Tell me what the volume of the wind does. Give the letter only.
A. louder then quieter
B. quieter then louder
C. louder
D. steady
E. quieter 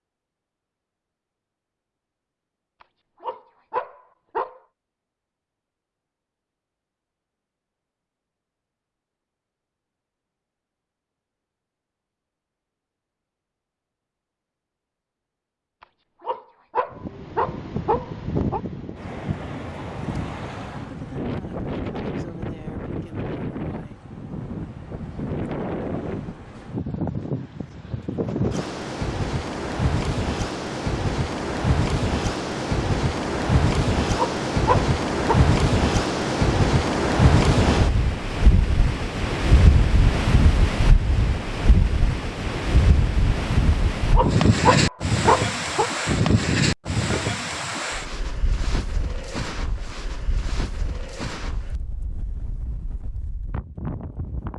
A.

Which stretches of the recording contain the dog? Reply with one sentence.
You can hear the dog from 2.8 to 4.6 s, from 15.8 to 18.6 s, from 34.1 to 35.4 s and from 43.7 to 45.9 s.